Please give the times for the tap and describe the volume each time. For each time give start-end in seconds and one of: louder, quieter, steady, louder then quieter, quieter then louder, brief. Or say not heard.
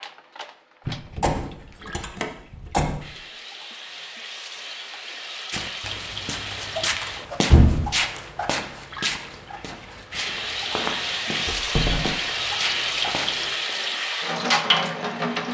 0.0-15.4 louder.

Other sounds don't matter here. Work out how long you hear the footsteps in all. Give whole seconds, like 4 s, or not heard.
8 s.